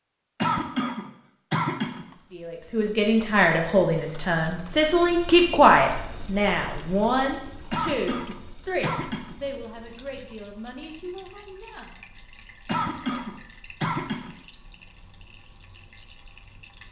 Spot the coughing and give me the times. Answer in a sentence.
The coughing can be heard from 0.4 to 2.0 s, from 7.7 to 9.3 s and from 12.7 to 14.3 s.